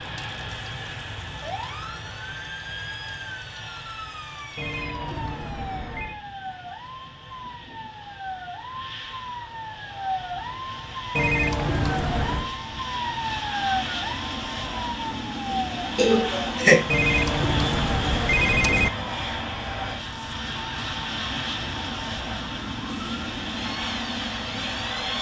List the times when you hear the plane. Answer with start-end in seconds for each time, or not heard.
0.0-25.1.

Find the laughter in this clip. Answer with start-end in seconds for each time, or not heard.
15.9-16.8.